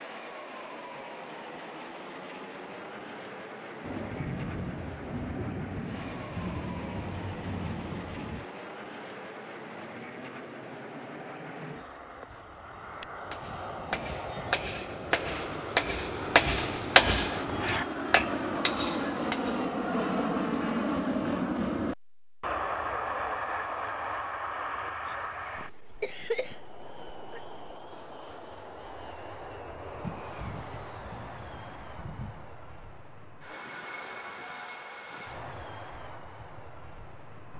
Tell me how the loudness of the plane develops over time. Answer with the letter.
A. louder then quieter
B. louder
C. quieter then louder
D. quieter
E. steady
A.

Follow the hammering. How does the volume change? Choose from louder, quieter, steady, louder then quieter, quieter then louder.
louder then quieter.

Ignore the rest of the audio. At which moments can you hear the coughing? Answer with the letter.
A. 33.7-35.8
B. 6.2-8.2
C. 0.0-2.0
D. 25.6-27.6
D.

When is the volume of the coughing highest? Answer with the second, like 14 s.
26 s.